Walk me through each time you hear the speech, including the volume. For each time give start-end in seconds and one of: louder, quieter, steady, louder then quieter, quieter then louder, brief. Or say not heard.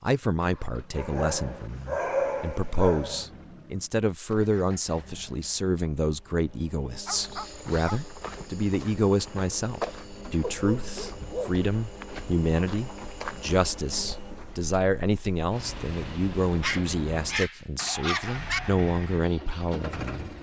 0.0-20.3 steady.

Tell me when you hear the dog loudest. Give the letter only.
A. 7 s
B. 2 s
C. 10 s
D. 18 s
B.